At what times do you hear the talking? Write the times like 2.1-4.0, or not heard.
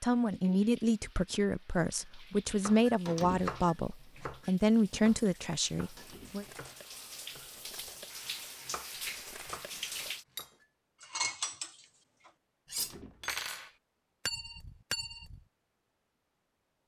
0.0-6.5.